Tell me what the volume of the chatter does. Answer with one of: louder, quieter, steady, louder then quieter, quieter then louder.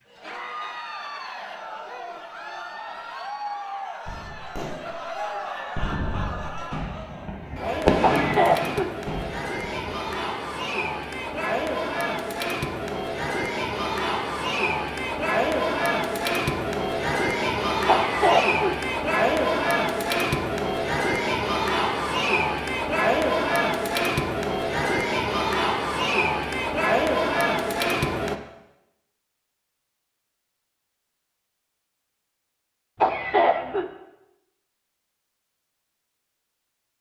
louder.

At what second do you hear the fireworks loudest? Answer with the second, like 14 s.
8 s.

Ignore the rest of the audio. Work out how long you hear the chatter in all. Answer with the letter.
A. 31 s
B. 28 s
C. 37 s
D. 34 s
B.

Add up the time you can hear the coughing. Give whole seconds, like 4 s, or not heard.
3 s.